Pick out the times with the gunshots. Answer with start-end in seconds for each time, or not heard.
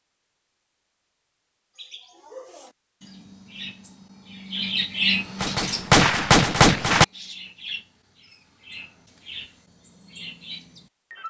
5.4-7.0.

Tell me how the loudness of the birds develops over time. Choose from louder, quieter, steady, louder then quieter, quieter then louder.
louder then quieter.